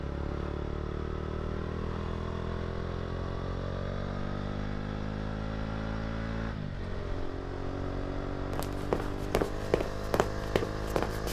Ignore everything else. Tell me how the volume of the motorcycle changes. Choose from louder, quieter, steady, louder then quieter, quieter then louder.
steady.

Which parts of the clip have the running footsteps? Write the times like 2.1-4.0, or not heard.
8.5-11.2.